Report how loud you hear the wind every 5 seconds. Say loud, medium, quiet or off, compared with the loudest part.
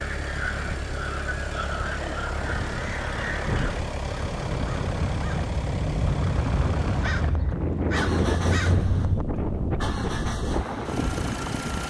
medium, loud, loud.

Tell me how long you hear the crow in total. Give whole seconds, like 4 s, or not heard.
9 s.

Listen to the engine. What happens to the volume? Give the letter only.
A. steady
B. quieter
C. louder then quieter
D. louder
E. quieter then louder
A.